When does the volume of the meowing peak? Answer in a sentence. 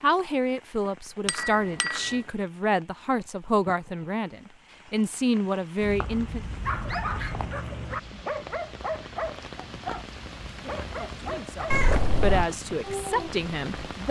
The loudest moment of the meowing is at 12 seconds.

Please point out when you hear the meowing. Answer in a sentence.
You can hear the meowing from 1.2 to 2.2 s, from 5.8 to 7.5 s and from 11.7 to 12.5 s.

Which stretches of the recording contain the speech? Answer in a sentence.
The speech can be heard from 0.0 to 6.4 s and from 10.6 to 14.0 s.